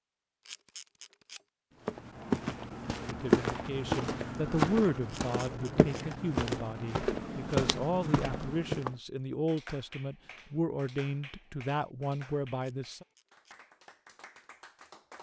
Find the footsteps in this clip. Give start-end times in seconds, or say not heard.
1.9-8.9.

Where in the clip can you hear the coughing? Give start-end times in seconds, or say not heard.
not heard.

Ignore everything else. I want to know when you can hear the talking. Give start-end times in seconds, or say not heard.
3.0-13.1.